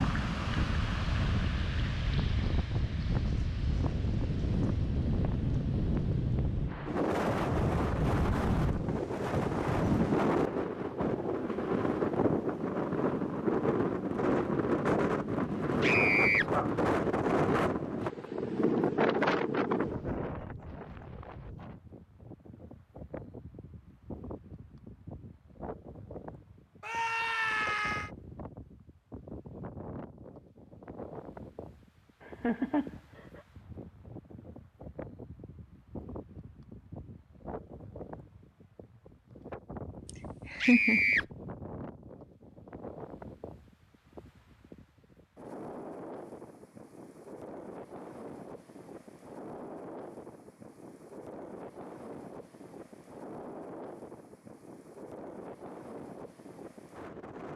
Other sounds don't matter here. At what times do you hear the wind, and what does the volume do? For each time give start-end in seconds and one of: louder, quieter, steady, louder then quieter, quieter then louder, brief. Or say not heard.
0.0-57.5 quieter.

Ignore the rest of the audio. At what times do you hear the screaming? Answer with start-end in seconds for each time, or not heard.
15.8-16.4, 26.8-28.1, 40.6-41.2.